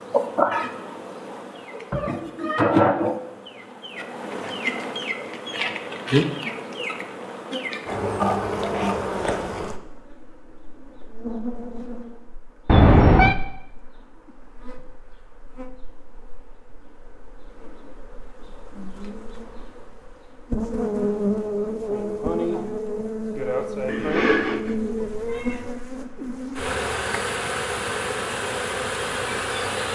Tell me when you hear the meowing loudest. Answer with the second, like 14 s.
13 s.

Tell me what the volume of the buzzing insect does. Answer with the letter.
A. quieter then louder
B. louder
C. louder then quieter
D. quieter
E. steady
A.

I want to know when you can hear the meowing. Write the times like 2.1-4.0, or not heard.
1.7-2.8, 12.7-13.4, 23.9-25.6.